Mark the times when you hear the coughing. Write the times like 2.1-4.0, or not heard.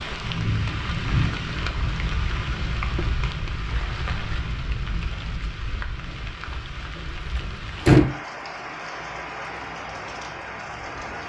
not heard.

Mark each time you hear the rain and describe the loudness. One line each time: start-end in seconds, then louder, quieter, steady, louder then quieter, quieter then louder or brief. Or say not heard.
0.0-11.2 quieter.